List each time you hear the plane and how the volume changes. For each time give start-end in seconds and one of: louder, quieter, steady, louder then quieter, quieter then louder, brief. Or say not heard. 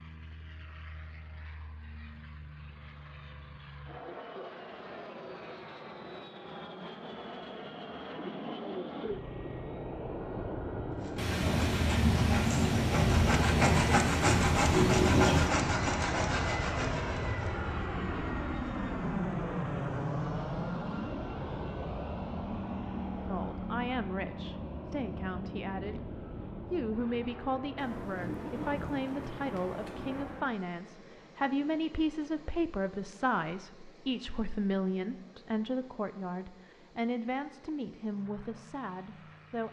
0.0-39.6 louder then quieter.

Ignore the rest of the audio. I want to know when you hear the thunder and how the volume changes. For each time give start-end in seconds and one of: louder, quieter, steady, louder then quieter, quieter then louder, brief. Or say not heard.
11.2-15.6 steady
27.8-30.4 brief.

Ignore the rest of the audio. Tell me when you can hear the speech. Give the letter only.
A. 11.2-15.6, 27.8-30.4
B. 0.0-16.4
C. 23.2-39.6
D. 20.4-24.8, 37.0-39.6
C.